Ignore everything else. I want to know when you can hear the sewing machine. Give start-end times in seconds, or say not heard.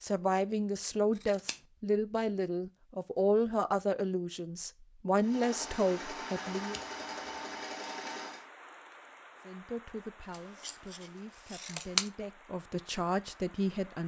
5.2-8.4.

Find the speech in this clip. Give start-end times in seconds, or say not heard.
0.0-6.8, 9.4-14.0.